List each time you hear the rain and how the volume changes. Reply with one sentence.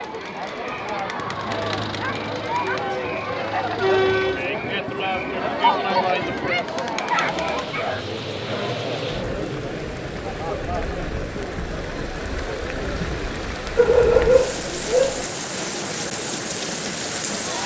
The rain can be heard from 7.0 to 17.6 s, getting louder.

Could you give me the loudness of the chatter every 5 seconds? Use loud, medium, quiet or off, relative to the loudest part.
loud, loud, medium, quiet.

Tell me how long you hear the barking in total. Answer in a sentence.
The barking can be heard for 4 seconds in total.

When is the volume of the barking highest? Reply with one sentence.
The volume of the barking peaks at 14 seconds.